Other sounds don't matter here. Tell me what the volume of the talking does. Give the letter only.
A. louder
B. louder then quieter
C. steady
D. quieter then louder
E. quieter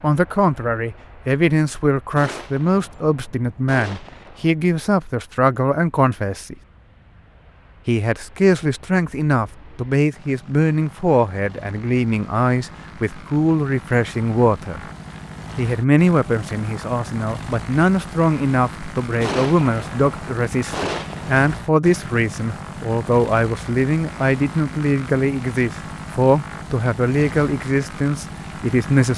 C.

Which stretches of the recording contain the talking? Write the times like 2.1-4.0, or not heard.
0.0-6.5, 7.8-14.8, 15.6-29.1.